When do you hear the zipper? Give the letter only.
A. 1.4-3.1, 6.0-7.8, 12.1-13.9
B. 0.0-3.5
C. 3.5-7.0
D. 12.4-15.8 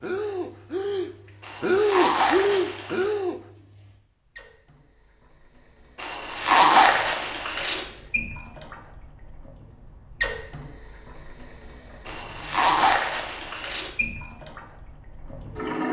A.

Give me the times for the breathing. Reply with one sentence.
The breathing can be heard from 0.0 to 3.5 s.